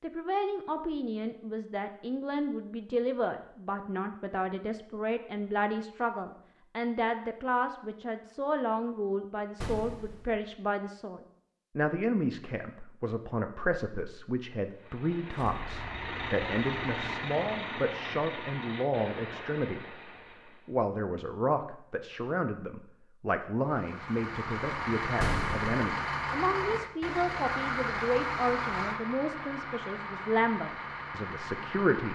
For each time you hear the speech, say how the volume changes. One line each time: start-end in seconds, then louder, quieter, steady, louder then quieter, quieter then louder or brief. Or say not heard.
0.0-32.1 steady.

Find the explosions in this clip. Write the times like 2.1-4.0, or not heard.
9.6-10.3, 25.2-25.7.